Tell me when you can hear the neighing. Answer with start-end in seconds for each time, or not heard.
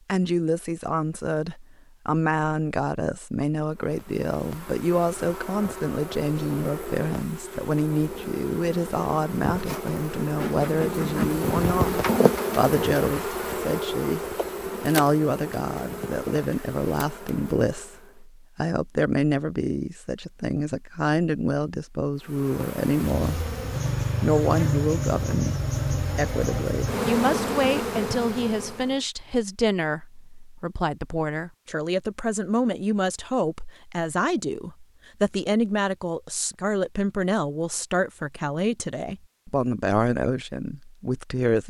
not heard.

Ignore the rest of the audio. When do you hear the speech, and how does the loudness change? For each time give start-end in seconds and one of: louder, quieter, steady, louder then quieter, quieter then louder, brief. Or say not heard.
0.1-23.5 steady
24.2-41.6 steady.